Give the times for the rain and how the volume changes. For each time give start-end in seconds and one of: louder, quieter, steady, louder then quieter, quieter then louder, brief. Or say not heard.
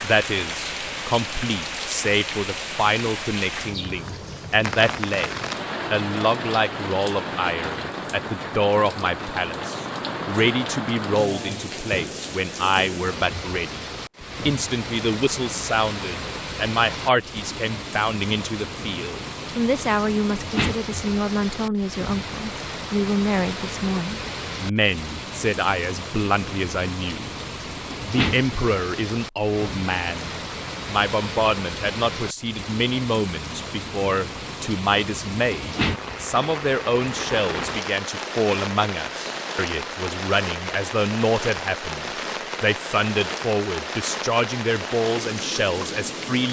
0.0-46.4 steady.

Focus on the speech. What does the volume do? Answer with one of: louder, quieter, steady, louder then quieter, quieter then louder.
steady.